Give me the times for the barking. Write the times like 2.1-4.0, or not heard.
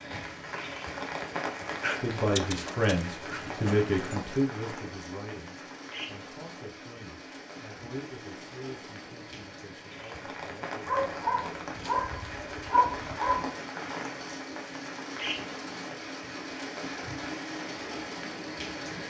1.8-4.3, 10.8-13.6.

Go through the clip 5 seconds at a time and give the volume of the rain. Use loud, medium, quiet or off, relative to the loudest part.
loud, medium, loud, loud.